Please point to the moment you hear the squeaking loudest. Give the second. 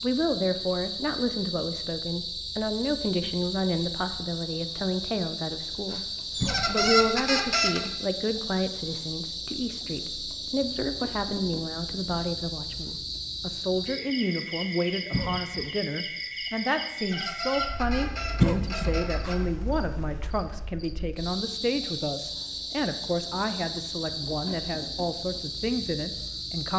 7 s.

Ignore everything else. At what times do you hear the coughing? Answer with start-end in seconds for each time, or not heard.
6.4-6.9, 15.1-15.7, 18.4-18.9.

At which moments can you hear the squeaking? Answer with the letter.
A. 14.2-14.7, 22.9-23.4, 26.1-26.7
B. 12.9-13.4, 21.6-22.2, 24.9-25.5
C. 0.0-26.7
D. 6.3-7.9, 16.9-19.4
D.